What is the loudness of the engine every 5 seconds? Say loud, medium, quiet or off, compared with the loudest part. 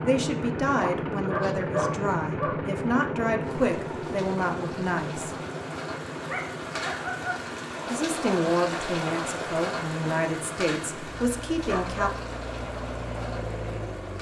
loud, medium, medium.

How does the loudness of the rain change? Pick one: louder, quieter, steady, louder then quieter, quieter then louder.
louder then quieter.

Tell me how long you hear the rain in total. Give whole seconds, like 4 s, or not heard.
11 s.